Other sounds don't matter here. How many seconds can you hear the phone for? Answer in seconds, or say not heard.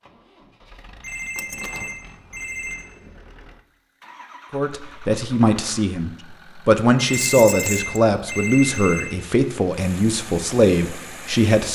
4 s.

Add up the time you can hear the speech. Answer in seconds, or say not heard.
7 s.